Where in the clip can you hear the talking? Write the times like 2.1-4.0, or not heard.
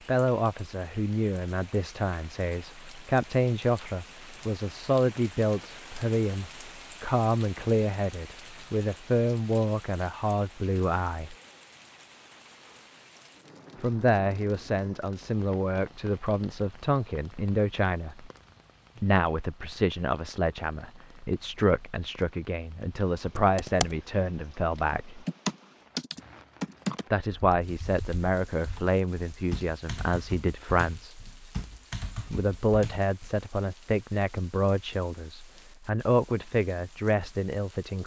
0.1-11.3, 13.8-18.3, 19.0-25.2, 27.1-31.2, 32.3-38.0.